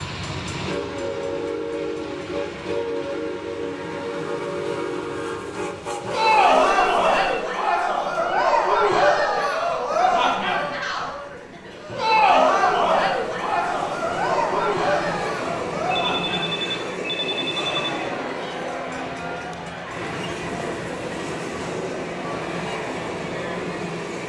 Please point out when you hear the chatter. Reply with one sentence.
You can hear the chatter from 6.0 to 24.2 s.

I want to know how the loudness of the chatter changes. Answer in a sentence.
The volume of the chatter goes down.